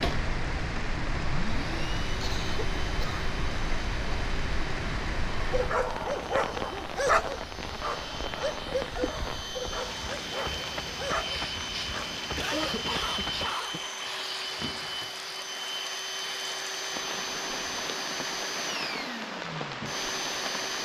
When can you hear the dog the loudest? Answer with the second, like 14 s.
7 s.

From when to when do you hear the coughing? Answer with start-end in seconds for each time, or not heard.
2.2-3.2, 12.3-13.8.